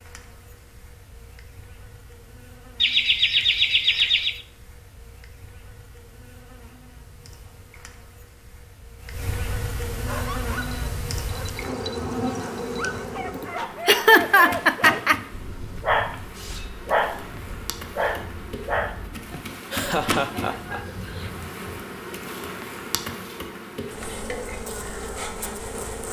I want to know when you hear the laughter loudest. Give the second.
14 s.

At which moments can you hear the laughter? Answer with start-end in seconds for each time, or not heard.
2.8-4.4, 13.4-15.2, 19.3-21.3.